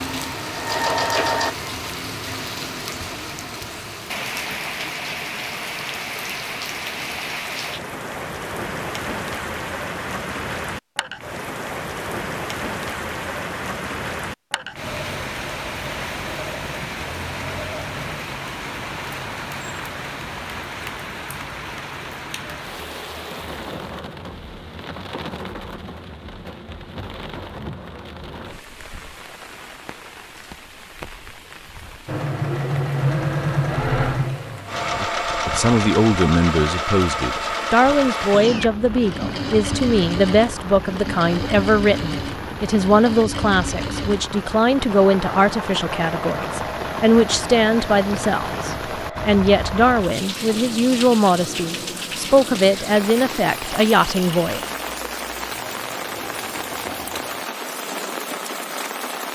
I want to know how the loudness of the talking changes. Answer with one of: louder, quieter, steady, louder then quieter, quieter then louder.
steady.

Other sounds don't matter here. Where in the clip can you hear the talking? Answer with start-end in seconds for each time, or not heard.
35.0-54.6.